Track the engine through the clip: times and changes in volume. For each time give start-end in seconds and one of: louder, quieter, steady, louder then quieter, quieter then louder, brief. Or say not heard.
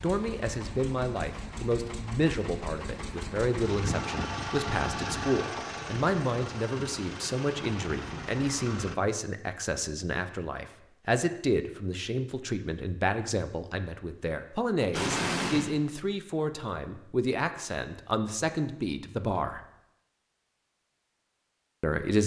0.0-9.0 louder then quieter.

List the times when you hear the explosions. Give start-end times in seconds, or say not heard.
14.9-15.8.